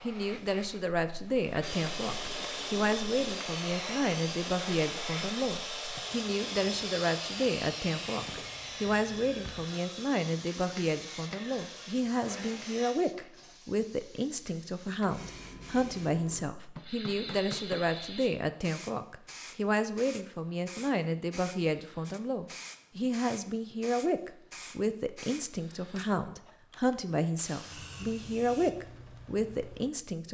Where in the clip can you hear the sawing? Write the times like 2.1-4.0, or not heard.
1.6-12.9.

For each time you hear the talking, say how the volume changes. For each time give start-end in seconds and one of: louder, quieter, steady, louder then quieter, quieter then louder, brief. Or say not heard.
0.0-30.2 steady.